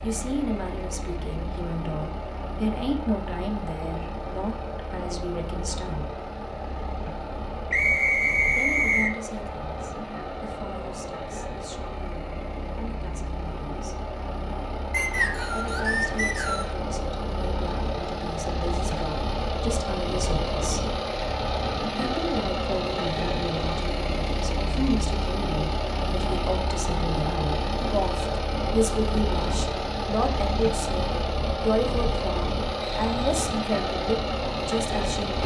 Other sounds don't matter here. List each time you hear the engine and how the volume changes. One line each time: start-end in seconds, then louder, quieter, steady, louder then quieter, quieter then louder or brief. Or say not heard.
0.0-35.4 louder.